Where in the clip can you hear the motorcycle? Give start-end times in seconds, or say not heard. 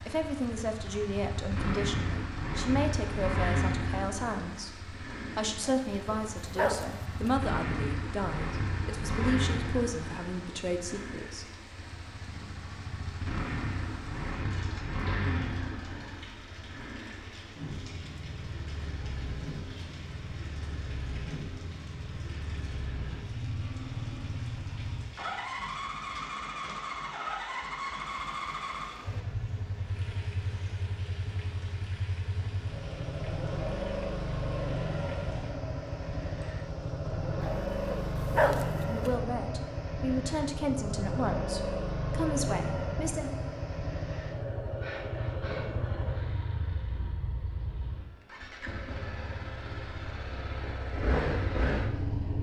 0.0-52.3.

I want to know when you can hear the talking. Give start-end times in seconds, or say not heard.
0.1-11.4, 38.8-43.3.